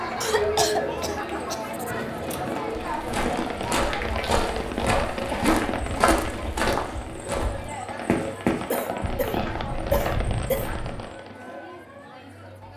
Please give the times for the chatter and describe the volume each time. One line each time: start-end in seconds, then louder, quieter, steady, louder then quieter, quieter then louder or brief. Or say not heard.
0.0-12.7 quieter.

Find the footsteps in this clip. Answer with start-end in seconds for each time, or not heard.
2.6-11.0.